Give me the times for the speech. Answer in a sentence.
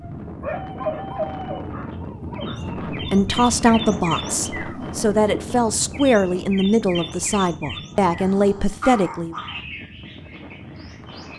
The speech can be heard from 2.9 to 9.3 s.